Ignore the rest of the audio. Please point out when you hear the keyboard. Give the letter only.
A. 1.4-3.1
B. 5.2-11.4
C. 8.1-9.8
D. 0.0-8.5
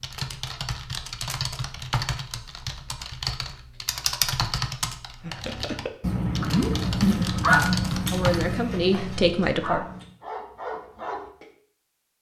D.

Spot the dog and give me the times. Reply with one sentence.
You can hear the dog from 5.2 to 11.4 s.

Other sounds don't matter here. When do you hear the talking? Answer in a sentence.
You can hear the talking from 8.1 to 9.8 s.